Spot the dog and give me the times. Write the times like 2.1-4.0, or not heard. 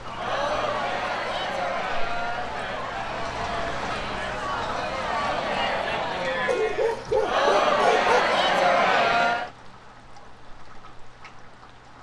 6.5-8.2.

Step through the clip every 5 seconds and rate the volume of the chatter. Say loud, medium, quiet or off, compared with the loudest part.
medium, loud, off.